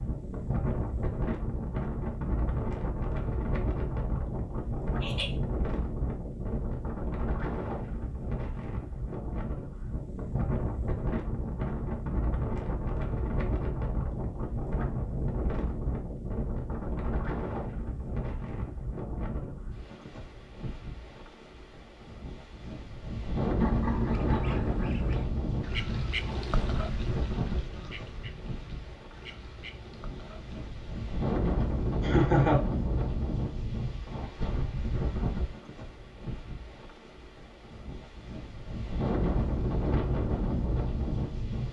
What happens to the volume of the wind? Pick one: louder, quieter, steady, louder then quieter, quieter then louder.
steady.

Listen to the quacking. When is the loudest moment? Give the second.
26 s.